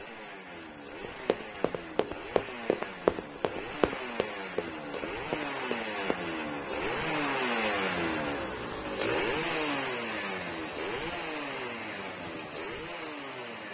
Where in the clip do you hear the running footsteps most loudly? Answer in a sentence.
The loudest moment of the running footsteps is at 3 seconds.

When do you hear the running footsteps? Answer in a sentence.
You can hear the running footsteps from 1.0 to 6.2 s.